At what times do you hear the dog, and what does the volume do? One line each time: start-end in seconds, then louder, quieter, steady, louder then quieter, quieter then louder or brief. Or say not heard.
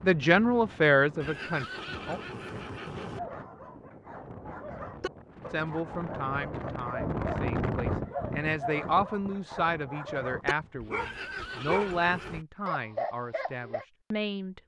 3.0-13.8 louder.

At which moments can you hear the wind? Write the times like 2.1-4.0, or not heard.
0.0-10.9.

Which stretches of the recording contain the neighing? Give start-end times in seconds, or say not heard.
1.2-3.2, 10.9-12.4.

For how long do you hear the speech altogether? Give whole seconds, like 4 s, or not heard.
11 s.